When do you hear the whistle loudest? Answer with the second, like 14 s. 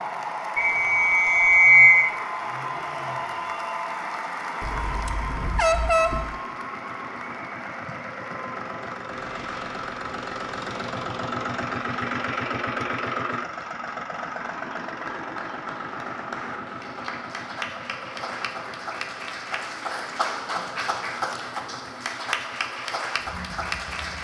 2 s.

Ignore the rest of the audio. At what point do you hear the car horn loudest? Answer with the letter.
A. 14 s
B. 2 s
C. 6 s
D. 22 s
C.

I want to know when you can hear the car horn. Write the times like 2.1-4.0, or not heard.
4.6-6.3.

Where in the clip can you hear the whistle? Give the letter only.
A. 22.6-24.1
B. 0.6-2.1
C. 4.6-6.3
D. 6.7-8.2
B.